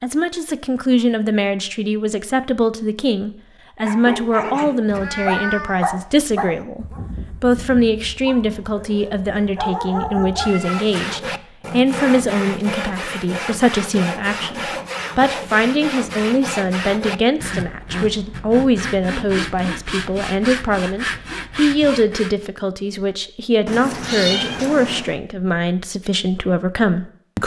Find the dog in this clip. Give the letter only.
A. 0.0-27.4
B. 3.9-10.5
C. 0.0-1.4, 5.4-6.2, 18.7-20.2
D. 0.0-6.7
B.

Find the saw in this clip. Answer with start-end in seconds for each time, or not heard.
10.4-22.4.